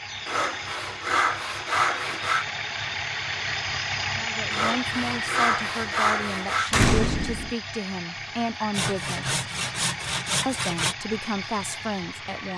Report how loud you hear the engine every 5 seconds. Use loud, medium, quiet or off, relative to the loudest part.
loud, loud, medium.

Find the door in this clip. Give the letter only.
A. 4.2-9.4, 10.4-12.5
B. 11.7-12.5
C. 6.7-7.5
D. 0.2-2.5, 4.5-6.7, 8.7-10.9
C.